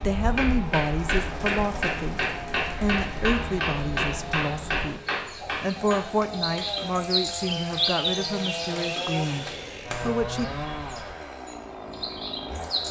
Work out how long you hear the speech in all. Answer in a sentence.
You can hear the speech for 10 seconds altogether.